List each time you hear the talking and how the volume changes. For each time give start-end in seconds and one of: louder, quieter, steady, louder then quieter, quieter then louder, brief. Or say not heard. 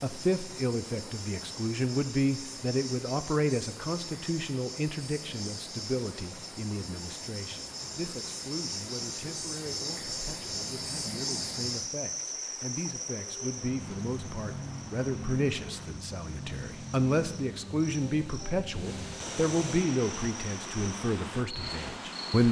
0.0-22.4 quieter then louder.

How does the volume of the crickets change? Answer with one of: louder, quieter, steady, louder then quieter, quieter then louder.
louder then quieter.